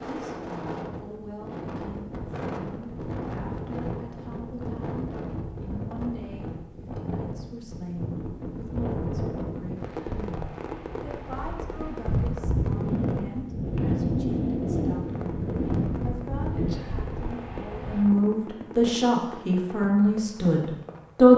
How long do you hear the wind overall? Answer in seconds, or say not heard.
18 s.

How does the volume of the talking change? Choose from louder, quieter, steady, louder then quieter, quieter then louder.
louder.